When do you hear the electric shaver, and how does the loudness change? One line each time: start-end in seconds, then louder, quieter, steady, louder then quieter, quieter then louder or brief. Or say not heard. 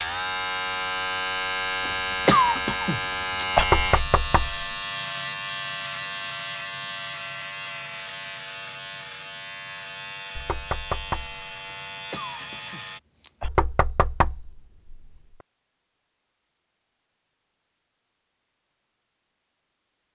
0.0-13.0 quieter.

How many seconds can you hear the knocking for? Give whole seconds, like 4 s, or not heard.
4 s.